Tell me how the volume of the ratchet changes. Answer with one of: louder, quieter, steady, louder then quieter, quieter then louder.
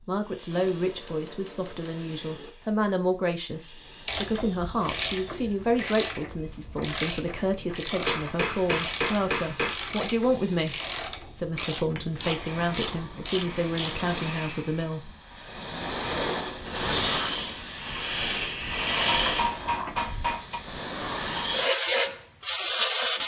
steady.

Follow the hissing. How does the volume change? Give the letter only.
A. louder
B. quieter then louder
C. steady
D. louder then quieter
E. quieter
A.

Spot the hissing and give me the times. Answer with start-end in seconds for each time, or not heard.
0.0-23.2.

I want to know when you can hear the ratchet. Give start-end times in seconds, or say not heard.
4.0-14.1.